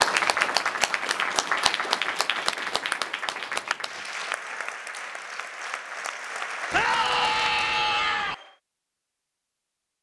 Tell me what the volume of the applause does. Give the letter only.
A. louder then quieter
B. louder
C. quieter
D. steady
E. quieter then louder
C.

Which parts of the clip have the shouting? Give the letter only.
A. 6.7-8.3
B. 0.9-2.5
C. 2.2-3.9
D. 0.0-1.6
A.